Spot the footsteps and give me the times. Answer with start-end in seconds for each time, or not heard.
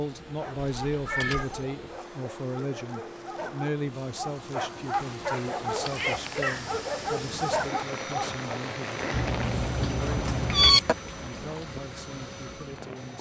not heard.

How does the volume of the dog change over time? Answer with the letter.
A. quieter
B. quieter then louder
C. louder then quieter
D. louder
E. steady
D.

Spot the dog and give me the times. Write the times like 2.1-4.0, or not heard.
0.3-8.4.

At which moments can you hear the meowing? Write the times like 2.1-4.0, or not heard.
0.8-1.6, 4.9-6.8, 9.1-10.9.